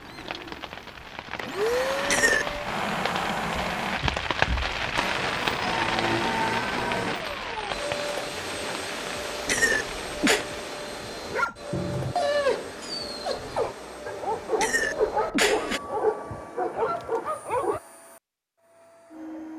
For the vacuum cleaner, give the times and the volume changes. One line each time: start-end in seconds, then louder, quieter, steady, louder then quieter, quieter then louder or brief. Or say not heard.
0.0-19.5 quieter.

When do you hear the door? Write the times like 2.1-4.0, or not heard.
not heard.